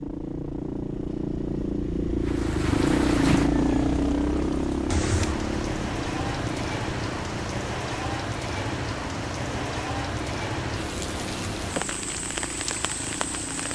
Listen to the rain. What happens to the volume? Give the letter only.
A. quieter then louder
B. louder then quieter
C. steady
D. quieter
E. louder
C.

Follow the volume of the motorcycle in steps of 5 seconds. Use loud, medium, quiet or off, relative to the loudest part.
loud, medium, quiet.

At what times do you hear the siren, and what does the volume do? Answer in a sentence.
The siren can't be heard in this clip.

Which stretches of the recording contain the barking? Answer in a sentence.
The barking can't be heard in this clip.